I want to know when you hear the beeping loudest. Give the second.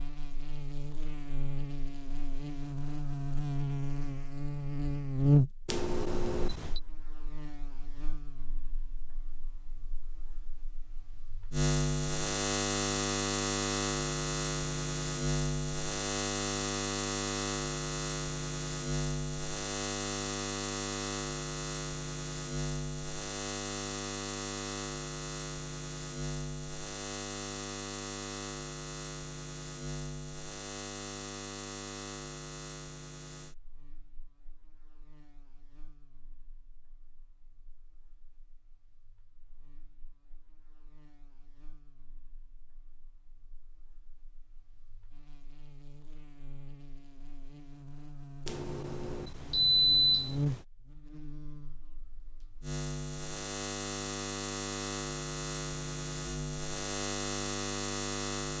50 s.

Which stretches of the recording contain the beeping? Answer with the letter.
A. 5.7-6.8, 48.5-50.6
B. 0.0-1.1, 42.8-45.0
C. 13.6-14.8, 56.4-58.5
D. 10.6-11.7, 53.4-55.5
A.